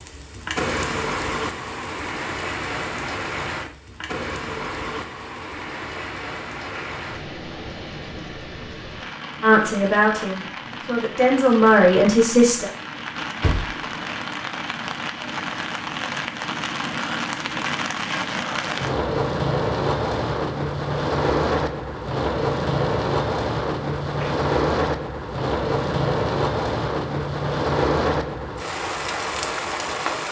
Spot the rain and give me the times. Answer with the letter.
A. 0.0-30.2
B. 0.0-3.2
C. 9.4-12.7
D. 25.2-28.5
A.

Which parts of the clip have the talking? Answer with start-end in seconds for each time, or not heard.
9.4-12.7.